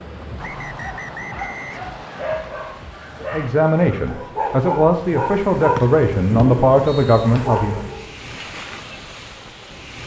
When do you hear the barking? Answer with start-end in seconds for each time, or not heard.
0.8-8.2.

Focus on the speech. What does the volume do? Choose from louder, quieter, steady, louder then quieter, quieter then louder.
steady.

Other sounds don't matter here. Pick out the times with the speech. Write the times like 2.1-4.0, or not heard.
3.2-7.8.